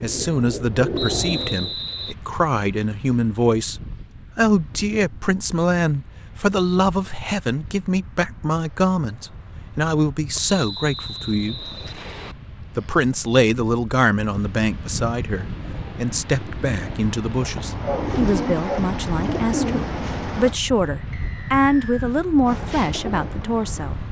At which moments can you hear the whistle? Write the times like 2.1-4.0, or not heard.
0.9-2.1, 10.3-12.3, 21.1-22.1.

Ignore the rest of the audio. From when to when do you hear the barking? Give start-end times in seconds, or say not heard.
17.4-18.8.